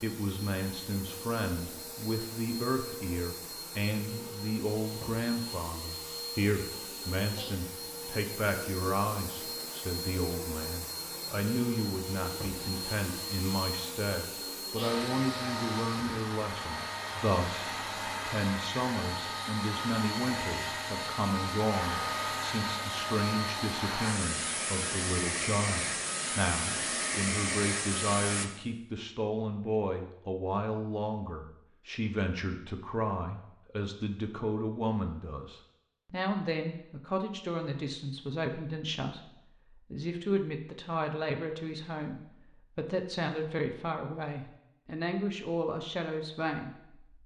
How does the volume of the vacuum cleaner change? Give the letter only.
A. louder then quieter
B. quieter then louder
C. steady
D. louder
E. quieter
D.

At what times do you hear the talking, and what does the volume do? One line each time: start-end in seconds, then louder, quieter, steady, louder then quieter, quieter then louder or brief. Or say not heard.
0.0-47.2 steady.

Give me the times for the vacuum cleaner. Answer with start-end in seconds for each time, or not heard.
0.0-28.4.